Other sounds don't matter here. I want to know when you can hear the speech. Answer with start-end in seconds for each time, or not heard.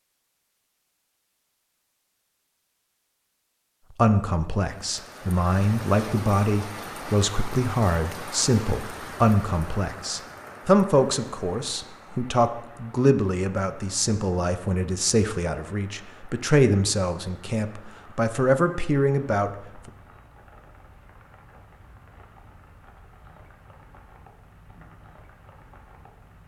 4.0-19.6.